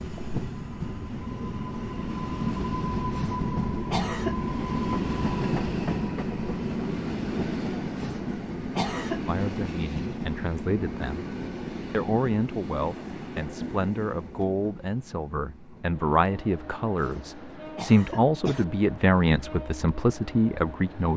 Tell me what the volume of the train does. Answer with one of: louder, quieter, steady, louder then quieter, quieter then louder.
quieter.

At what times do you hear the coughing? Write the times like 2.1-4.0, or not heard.
3.1-4.3, 8.0-9.2, 17.0-18.6.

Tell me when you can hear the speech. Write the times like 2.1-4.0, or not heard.
9.2-11.2, 11.9-21.1.